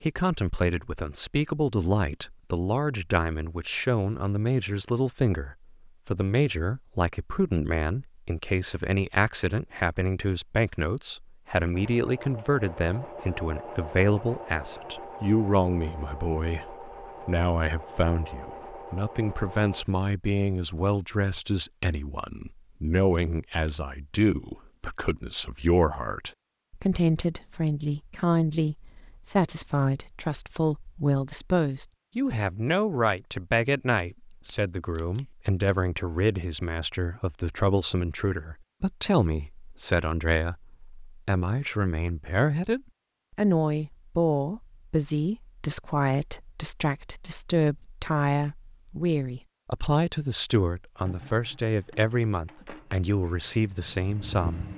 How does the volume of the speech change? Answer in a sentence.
The loudness of the speech stays about the same.